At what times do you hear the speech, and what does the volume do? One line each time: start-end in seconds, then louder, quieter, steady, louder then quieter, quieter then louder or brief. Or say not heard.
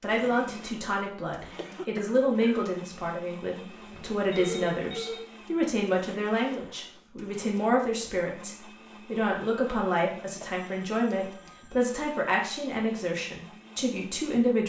0.0-14.6 steady.